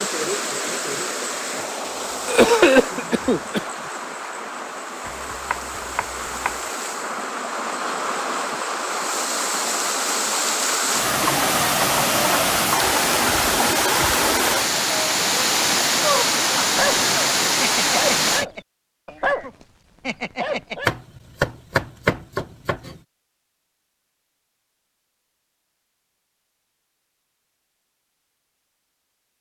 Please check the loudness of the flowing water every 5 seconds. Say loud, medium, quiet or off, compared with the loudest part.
medium, medium, loud, loud, off, off.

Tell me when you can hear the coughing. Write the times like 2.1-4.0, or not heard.
2.2-3.6.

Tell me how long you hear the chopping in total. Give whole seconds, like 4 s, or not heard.
4 s.